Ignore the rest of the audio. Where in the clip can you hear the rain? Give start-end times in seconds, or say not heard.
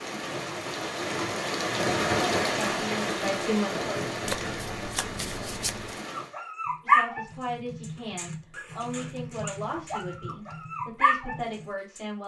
0.0-6.3.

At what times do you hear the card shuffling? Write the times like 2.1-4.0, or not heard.
4.2-6.0.